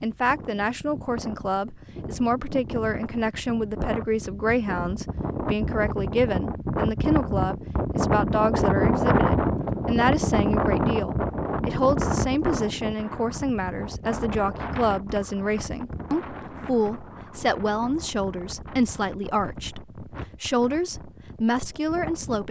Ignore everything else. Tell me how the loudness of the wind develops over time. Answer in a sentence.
The volume of the wind goes up, then down.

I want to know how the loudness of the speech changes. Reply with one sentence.
The loudness of the speech stays about the same.